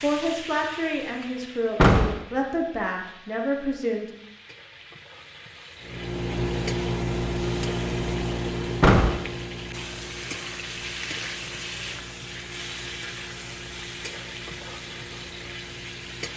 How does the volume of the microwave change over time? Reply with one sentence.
The loudness of the microwave goes down.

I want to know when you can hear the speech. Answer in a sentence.
You can hear the speech from 0.0 to 4.0 s.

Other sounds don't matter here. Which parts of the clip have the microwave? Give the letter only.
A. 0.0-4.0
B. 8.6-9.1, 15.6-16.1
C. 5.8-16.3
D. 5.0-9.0
C.